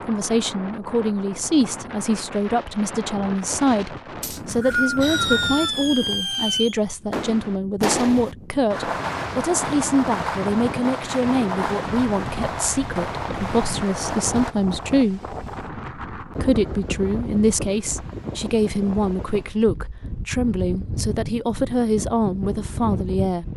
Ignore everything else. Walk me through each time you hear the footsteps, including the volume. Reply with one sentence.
The footsteps can't be heard in this clip.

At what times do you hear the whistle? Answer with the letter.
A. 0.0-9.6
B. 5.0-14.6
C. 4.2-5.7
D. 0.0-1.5
C.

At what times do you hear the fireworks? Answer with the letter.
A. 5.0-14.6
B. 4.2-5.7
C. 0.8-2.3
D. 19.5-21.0
A.